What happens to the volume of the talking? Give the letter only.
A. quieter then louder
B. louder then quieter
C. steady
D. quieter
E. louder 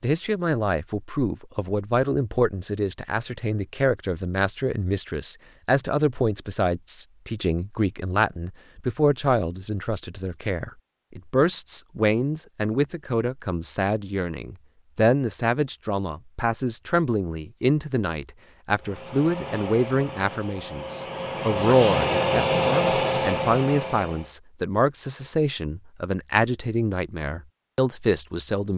C.